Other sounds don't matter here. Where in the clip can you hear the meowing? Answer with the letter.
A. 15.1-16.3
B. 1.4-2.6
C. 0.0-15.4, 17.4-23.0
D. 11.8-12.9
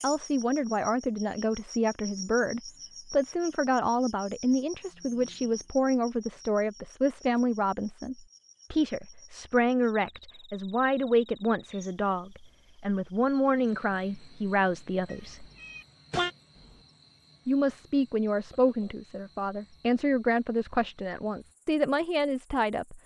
A.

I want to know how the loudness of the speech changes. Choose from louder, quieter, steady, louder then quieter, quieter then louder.
steady.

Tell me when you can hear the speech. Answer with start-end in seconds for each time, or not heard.
0.0-15.4, 17.4-23.0.